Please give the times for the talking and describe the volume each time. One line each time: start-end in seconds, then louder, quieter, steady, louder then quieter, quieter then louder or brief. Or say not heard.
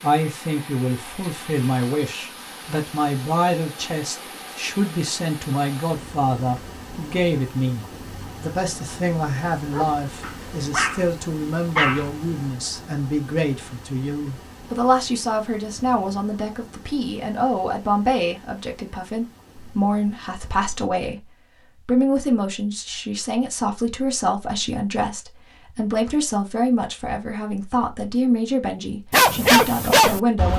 0.0-21.2 steady
21.9-30.5 steady.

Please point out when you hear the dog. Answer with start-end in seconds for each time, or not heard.
9.7-12.5, 29.1-30.5.